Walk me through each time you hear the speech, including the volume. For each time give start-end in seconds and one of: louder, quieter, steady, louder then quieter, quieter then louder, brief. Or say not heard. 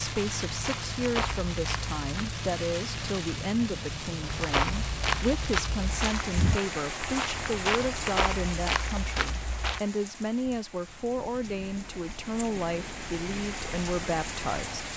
0.0-14.8 steady.